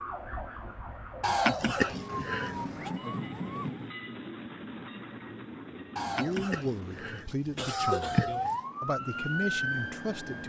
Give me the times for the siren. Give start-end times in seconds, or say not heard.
0.0-4.0, 7.7-10.4.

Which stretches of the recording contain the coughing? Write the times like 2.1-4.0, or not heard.
1.2-2.9, 6.0-8.7.